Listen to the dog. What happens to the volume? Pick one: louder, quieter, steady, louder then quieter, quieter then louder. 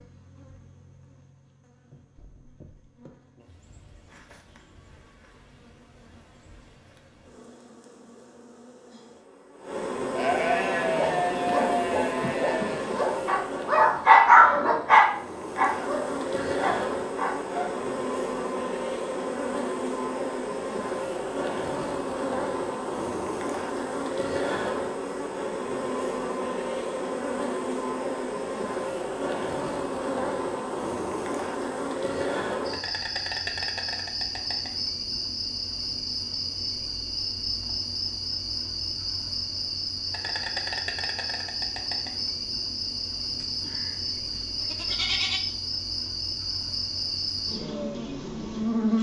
louder then quieter.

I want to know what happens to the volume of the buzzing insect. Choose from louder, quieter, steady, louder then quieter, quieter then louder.
louder.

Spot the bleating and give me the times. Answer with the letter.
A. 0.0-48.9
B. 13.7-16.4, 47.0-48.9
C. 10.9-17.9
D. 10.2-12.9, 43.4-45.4
D.